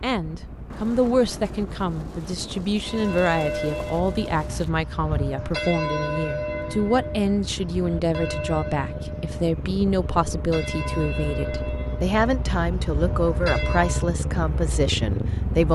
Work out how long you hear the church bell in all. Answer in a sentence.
You can hear the church bell for 11 seconds altogether.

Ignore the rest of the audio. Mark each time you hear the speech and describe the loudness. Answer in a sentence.
You can hear the speech from 0.0 to 15.7 s, at a steady volume.